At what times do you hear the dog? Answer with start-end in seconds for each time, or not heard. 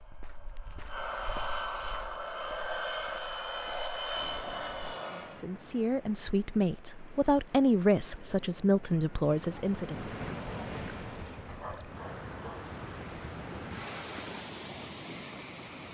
11.4-12.7.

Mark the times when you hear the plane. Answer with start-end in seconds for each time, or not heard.
0.0-5.5.